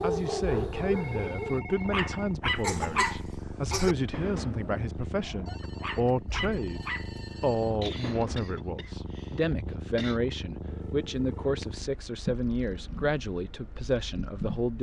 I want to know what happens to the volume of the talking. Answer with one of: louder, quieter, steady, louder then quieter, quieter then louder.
steady.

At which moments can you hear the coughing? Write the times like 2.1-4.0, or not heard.
1.9-4.0, 7.6-10.2.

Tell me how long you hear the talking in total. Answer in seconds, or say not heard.
15 s.